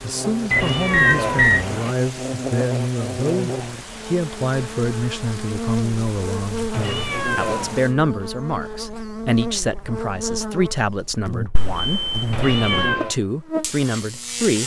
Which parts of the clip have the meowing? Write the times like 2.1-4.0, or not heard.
0.5-1.9, 6.7-7.9, 12.3-13.2.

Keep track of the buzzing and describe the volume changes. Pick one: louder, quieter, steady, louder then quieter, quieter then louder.
steady.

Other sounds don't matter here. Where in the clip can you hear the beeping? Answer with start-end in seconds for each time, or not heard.
0.5-1.7, 11.6-12.9.